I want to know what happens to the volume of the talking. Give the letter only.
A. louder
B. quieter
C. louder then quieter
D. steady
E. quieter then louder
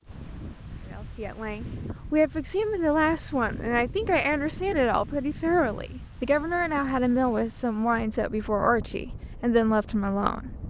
D.